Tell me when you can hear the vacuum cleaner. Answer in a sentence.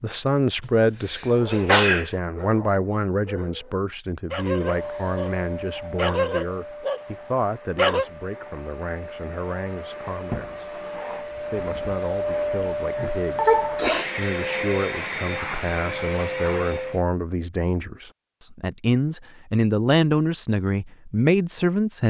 You can hear the vacuum cleaner from 4.5 to 17.1 s.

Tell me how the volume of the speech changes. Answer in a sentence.
The volume of the speech goes down, then up.